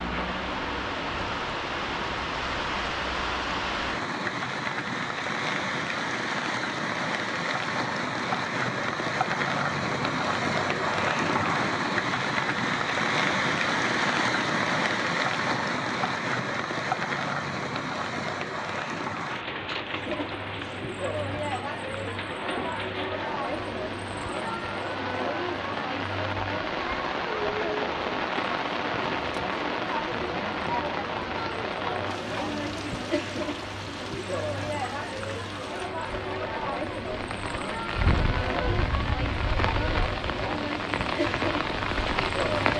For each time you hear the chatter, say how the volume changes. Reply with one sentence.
You can hear the chatter from 19.9 to 42.7 s, at a steady volume.